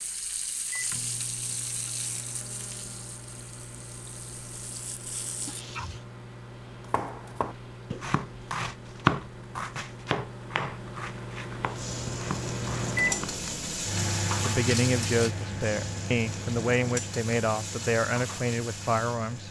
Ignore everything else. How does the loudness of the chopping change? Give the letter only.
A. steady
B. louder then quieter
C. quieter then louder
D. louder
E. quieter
B.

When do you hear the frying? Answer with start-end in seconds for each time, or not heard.
0.0-6.0, 11.6-19.4.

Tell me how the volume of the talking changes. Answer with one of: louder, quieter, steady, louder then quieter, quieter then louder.
steady.